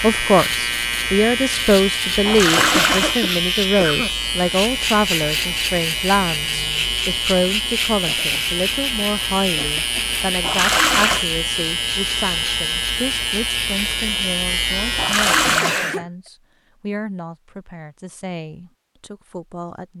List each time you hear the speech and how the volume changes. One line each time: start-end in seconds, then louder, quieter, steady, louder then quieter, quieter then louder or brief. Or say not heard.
0.0-19.9 quieter.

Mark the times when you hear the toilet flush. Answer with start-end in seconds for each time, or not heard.
2.2-3.2, 10.4-11.2, 14.9-15.9.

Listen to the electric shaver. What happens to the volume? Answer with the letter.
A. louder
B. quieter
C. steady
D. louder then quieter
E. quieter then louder
C.